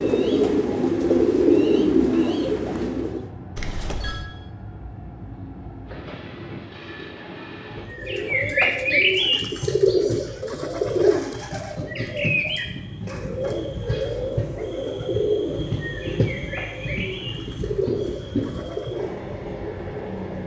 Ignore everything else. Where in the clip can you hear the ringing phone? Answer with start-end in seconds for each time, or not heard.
3.5-4.2.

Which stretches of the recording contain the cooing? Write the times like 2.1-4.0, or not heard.
0.0-3.2, 7.9-19.1.